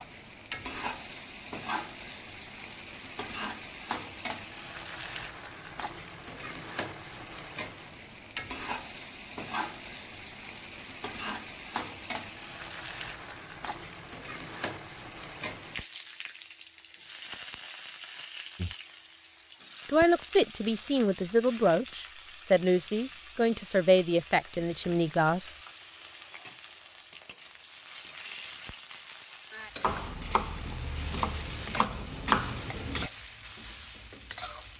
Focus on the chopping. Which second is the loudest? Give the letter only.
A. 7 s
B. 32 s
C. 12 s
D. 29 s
B.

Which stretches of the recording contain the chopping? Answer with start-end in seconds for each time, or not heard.
29.8-33.1.